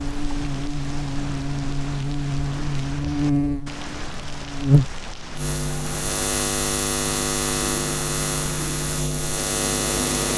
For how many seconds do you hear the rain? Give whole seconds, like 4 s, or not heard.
10 s.